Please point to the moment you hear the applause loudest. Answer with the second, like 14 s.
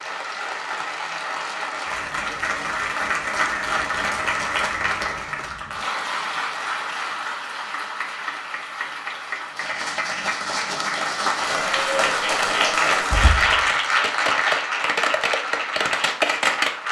13 s.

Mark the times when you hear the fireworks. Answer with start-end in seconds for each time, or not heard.
12.3-16.8.